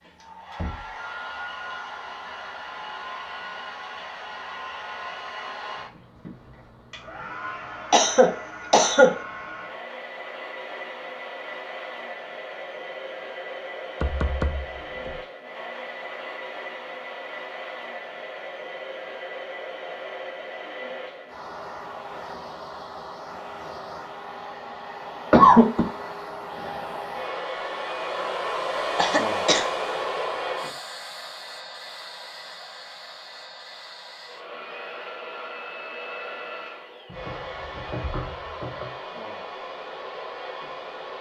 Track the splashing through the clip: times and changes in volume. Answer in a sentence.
The splashing can't be heard in this clip.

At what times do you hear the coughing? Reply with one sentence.
The coughing can be heard from 7.9 to 9.2 s, from 25.3 to 25.9 s and from 28.9 to 29.6 s.